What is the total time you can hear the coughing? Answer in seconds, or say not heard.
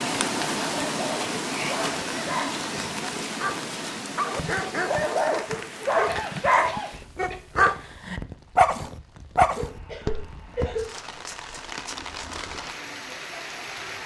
4 s.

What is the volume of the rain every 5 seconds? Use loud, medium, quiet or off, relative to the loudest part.
loud, medium, medium.